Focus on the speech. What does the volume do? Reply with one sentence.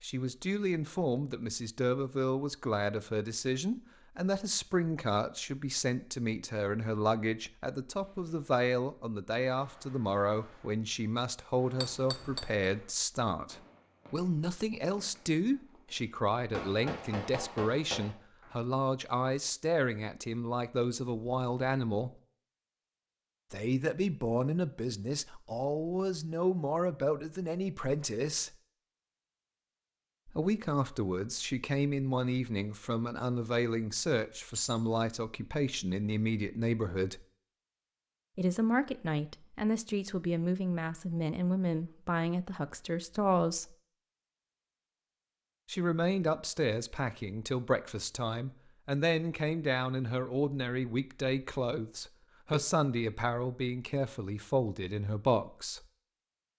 The loudness of the speech stays about the same.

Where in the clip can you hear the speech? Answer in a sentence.
You can hear the speech from 0.0 to 22.1 s, from 23.5 to 28.6 s, from 30.2 to 37.2 s, from 38.4 to 43.8 s and from 45.6 to 55.9 s.